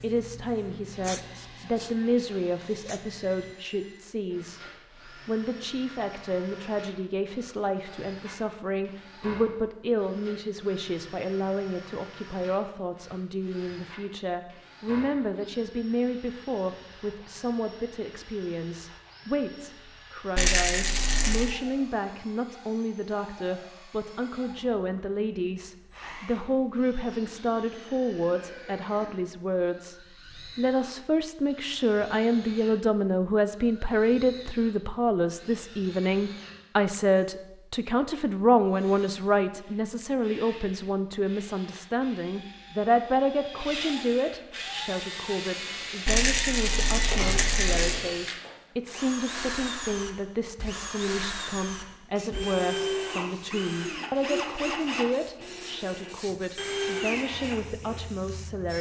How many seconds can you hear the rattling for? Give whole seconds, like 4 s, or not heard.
3 s.